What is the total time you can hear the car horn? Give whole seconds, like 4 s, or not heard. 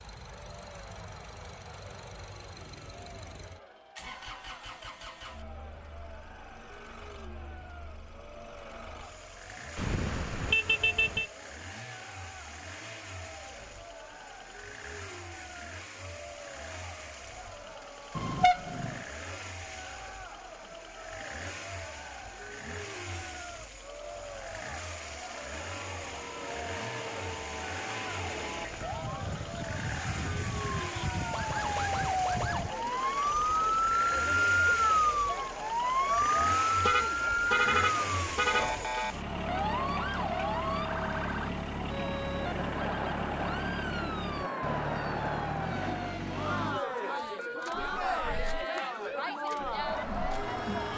5 s.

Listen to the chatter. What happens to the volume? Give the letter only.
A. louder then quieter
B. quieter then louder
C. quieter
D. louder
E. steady
D.